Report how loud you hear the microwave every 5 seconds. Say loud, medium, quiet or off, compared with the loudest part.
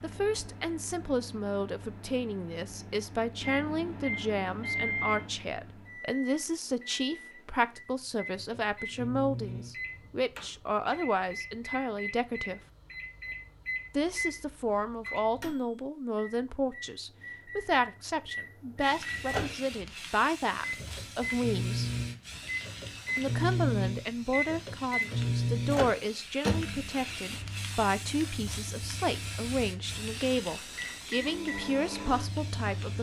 medium, medium, medium, medium, loud, loud, medium.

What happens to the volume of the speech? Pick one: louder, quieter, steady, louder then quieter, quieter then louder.
steady.